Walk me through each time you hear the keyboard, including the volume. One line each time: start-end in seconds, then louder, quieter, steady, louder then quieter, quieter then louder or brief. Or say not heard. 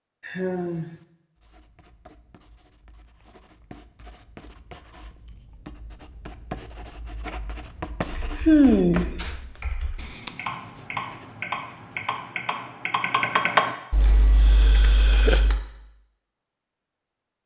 8.0-15.6 louder then quieter.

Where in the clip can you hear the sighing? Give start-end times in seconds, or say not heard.
0.2-1.0, 8.0-9.3, 14.5-15.4.